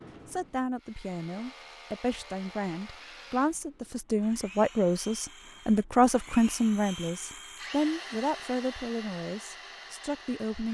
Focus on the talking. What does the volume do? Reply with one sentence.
The loudness of the talking goes up, then down.